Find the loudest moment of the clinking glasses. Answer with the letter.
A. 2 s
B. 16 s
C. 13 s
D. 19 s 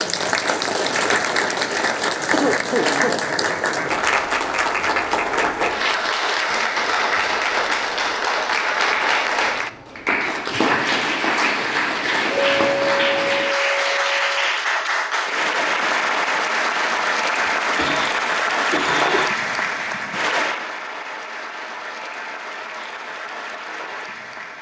C.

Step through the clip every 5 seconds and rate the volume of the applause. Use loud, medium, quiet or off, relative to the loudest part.
loud, loud, loud, loud, medium.